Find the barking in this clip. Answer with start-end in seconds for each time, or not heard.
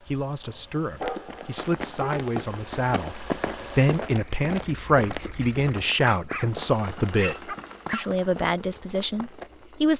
0.5-2.2, 5.4-8.1.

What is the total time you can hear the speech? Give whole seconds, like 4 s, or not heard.
10 s.